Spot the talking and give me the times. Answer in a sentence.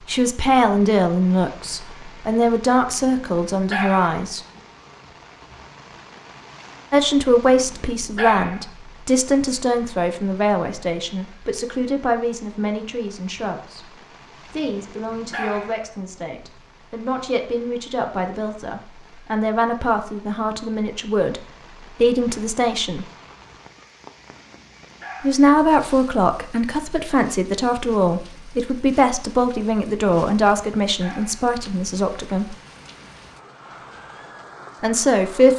The talking can be heard from 0.0 to 4.4 s, from 6.9 to 23.1 s, from 25.2 to 32.5 s and from 34.8 to 35.5 s.